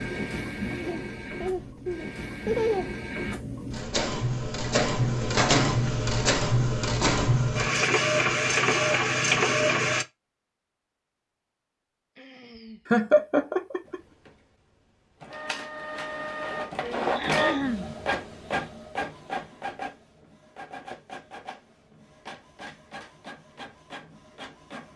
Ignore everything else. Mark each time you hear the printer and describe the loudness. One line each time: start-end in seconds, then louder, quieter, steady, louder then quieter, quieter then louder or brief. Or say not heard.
0.0-10.1 louder
13.8-24.9 louder then quieter.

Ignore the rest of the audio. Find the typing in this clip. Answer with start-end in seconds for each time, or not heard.
not heard.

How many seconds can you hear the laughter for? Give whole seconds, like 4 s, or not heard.
3 s.